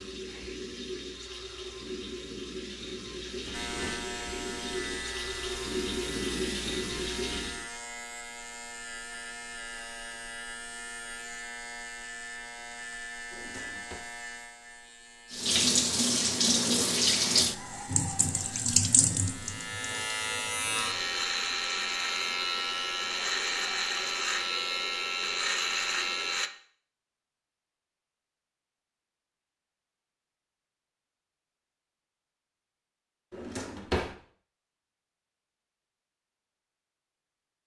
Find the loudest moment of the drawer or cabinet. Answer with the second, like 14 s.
34 s.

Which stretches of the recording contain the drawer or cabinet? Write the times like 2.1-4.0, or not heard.
3.2-4.0, 13.3-14.0, 33.3-34.1.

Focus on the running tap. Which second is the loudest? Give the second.
17 s.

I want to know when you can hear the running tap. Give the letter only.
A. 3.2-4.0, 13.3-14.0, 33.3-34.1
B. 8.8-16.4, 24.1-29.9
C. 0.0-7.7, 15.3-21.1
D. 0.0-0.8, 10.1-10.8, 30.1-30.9
C.